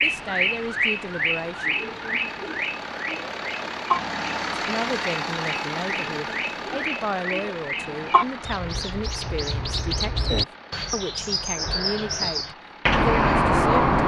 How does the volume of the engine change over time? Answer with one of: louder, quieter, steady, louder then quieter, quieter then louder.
louder then quieter.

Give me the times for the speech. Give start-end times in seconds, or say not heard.
0.0-1.8, 4.5-13.9.